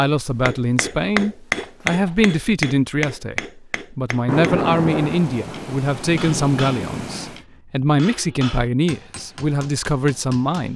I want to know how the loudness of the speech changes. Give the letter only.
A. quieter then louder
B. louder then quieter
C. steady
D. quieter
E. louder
C.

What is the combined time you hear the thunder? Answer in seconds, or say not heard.
3 s.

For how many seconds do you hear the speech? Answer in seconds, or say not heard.
11 s.